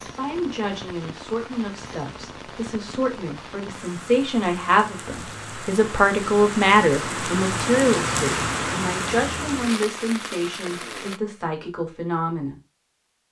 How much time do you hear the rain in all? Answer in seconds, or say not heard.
11 s.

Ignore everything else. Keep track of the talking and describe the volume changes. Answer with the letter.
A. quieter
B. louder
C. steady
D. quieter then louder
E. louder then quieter
E.